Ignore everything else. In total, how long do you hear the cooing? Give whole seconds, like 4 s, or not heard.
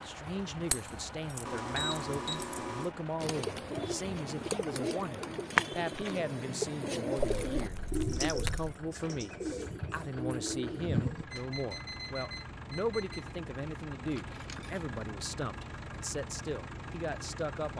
8 s.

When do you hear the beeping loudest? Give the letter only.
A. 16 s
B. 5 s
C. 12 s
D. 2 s
D.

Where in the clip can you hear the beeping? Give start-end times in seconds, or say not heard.
1.4-3.0, 11.3-13.3.